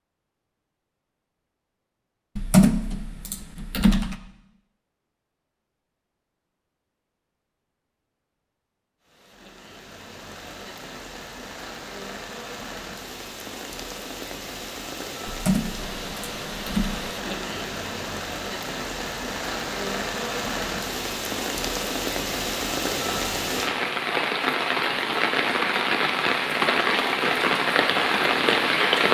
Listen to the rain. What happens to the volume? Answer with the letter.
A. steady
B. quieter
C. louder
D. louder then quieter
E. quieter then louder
C.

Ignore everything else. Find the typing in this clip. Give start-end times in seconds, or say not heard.
2.4-4.2, 15.2-17.1.